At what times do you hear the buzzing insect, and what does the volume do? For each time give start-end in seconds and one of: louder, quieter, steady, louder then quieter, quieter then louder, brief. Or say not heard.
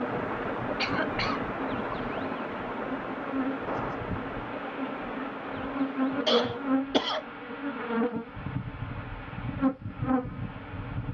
0.0-11.0 louder.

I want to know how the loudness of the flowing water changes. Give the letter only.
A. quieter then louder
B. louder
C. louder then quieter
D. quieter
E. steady
D.